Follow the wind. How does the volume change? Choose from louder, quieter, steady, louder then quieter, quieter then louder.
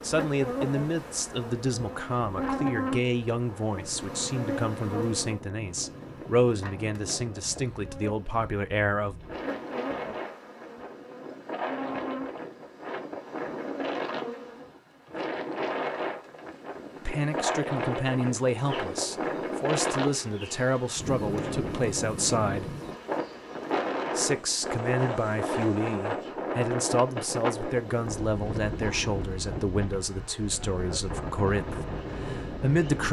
louder.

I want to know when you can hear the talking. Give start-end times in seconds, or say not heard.
0.0-9.2, 17.1-22.8, 24.1-33.0.